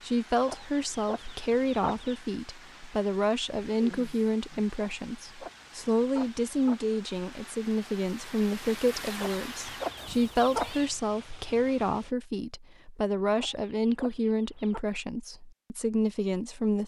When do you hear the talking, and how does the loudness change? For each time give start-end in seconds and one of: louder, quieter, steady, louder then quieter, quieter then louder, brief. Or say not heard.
0.0-16.8 steady.